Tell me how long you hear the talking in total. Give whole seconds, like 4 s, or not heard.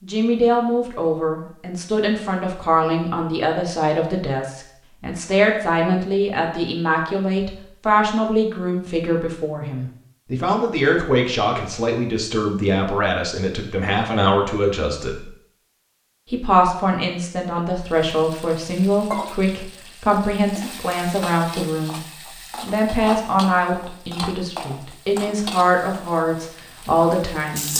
26 s.